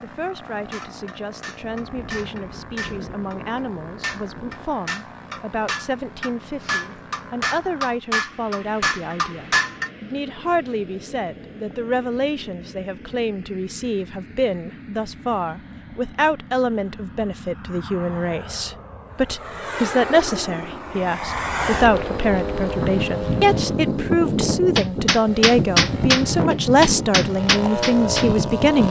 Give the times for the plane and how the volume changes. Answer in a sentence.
You can hear the plane from 0.0 to 28.8 s, getting louder.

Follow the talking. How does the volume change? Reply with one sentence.
The loudness of the talking goes up.